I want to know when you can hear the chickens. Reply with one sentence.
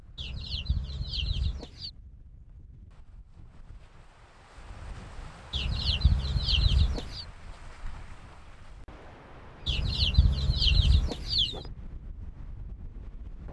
You can hear the chickens from 0.1 to 1.9 s, from 5.5 to 7.2 s and from 9.7 to 11.7 s.